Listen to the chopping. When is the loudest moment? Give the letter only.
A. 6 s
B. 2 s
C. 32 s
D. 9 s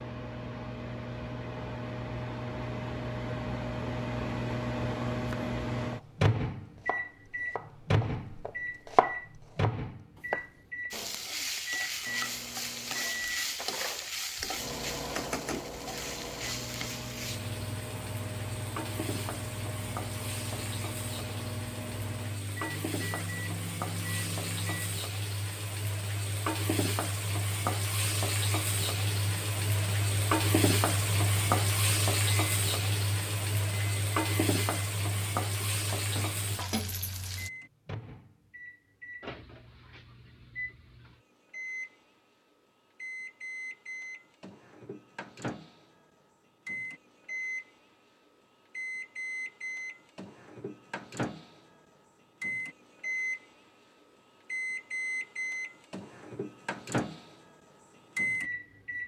D.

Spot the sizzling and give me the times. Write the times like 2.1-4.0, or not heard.
10.9-37.5.